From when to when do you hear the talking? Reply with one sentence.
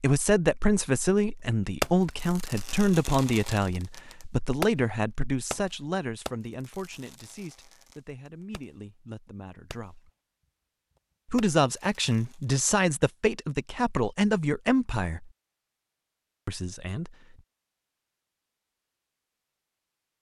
The talking can be heard from 0.0 to 10.1 s, from 11.2 to 15.3 s and from 16.4 to 17.1 s.